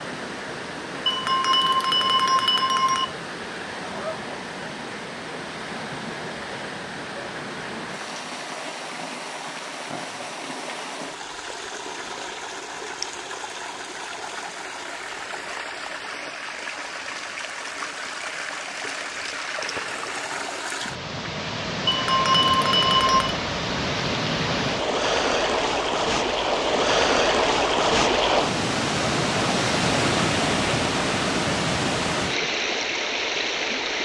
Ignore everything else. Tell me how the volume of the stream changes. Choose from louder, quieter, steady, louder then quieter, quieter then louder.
louder.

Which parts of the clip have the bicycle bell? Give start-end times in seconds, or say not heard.
1.1-3.0, 21.9-23.4.